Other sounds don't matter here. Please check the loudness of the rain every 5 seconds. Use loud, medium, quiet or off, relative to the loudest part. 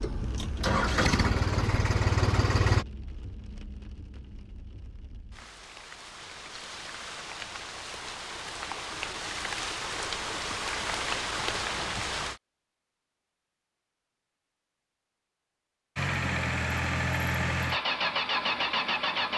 quiet, medium, loud, off.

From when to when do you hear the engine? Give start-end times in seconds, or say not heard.
0.0-2.9, 15.9-19.3.